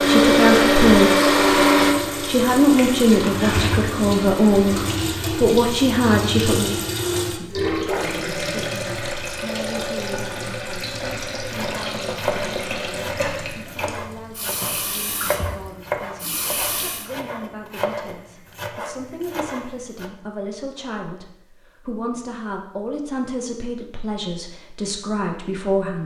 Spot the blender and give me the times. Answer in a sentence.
You can hear the blender from 0.0 to 5.0 s.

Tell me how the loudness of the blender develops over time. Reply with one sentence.
The loudness of the blender goes down.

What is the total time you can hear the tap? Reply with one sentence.
You can hear the tap for 17 seconds altogether.